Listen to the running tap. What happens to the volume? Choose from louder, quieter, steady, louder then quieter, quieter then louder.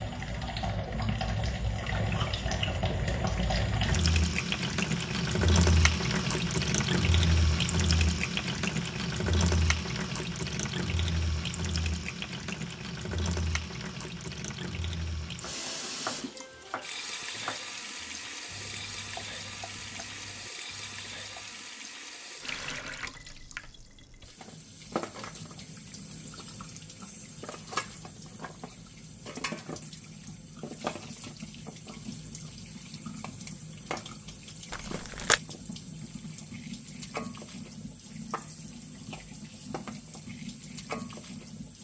quieter.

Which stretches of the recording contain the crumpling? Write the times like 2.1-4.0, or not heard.
34.7-35.4.